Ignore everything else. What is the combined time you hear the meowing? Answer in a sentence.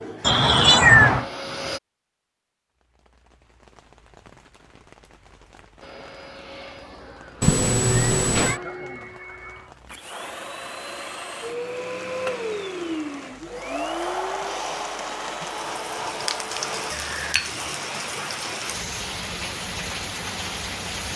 You can hear the meowing for 3 seconds altogether.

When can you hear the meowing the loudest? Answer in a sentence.
The loudest moment of the meowing is at 1 second.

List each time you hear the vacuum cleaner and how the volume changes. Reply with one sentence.
The vacuum cleaner can be heard briefly from 0.0 to 1.8 s; and from 5.8 to 16.9 s, getting louder.